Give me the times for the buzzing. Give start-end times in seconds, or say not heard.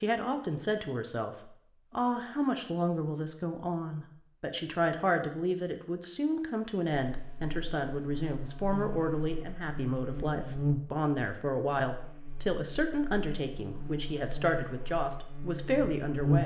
7.0-16.4.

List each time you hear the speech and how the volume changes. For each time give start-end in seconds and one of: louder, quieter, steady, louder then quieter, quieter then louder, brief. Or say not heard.
0.0-16.4 steady.